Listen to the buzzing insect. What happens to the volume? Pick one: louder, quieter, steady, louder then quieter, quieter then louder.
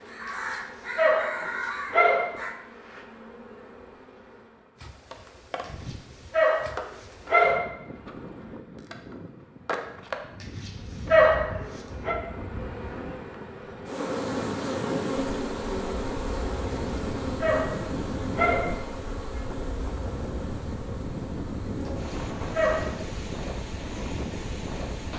louder then quieter.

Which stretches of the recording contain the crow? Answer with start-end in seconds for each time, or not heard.
0.0-2.5.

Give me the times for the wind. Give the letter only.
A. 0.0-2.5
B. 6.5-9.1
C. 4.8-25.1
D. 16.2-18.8
C.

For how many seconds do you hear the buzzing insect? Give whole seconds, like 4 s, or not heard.
25 s.